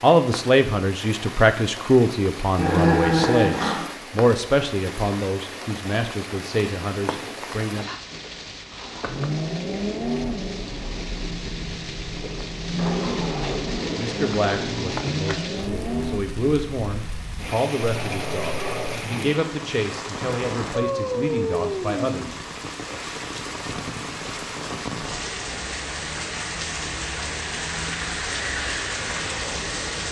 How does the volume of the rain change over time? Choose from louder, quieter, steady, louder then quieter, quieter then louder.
louder.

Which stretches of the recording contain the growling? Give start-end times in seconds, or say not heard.
2.5-3.9, 17.9-19.0.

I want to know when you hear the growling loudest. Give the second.
3 s.